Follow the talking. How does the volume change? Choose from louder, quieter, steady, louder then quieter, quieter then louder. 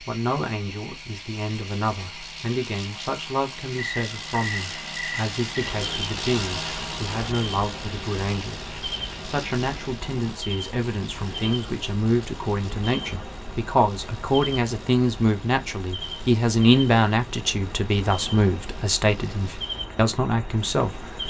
louder.